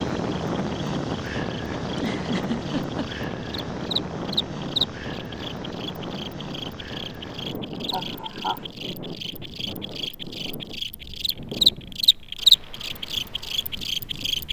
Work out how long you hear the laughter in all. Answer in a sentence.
You can hear the laughter for 2 seconds altogether.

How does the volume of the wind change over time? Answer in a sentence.
The volume of the wind goes down.